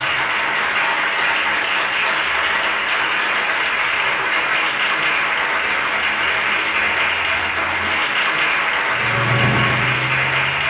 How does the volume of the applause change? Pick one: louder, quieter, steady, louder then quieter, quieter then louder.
steady.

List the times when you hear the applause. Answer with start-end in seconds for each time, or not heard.
0.0-10.6.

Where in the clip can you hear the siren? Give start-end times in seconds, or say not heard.
8.9-10.6.